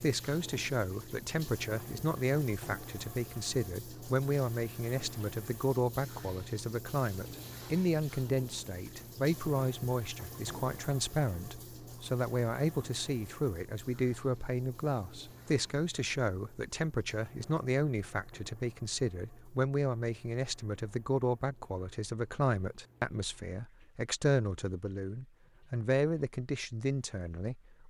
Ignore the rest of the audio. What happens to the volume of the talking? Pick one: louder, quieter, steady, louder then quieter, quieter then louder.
steady.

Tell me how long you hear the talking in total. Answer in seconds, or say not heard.
28 s.